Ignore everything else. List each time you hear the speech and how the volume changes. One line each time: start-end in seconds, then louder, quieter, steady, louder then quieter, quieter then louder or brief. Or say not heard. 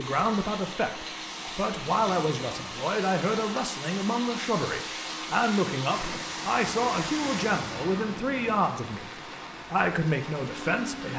0.0-11.1 steady.